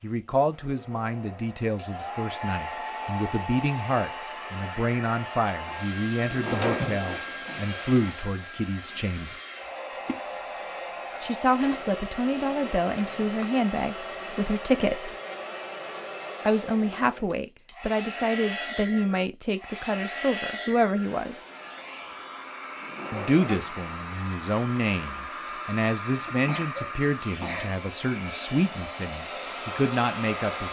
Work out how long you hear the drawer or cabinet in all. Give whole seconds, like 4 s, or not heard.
3 s.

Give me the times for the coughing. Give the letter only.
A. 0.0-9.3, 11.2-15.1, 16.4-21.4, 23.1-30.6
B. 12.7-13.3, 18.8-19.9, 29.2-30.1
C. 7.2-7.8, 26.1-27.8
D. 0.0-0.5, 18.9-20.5
C.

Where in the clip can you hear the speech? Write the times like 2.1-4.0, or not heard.
0.0-9.3, 11.2-15.1, 16.4-21.4, 23.1-30.6.